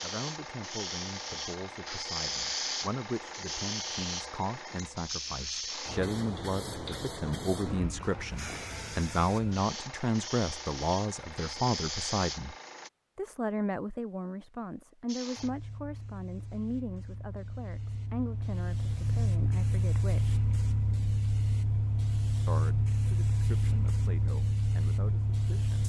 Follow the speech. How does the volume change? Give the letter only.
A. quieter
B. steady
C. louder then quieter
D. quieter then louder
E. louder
C.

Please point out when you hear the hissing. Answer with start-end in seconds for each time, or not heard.
0.0-12.9, 15.1-25.8.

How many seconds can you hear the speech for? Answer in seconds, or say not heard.
23 s.